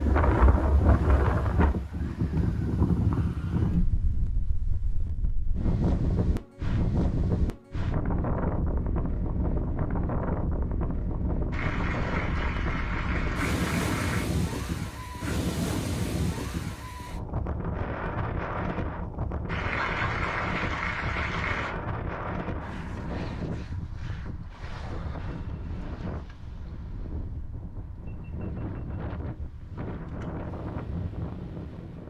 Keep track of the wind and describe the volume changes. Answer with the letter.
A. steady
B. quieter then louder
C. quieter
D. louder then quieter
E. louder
C.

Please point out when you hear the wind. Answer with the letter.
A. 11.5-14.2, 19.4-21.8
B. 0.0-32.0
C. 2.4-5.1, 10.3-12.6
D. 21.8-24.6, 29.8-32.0
B.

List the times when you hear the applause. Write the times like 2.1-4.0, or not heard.
11.5-14.2, 19.4-21.8.